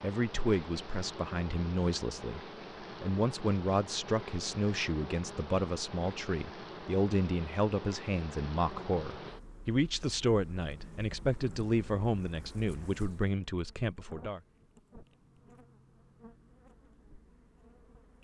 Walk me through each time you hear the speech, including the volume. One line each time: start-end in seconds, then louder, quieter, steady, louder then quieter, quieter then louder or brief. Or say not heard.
0.0-2.4 brief
3.0-14.4 steady.